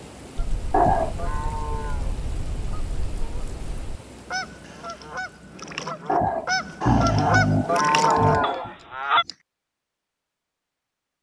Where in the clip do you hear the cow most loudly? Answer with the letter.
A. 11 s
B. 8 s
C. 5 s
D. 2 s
B.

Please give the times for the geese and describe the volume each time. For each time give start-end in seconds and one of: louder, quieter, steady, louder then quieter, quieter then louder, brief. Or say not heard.
0.3-9.2 louder.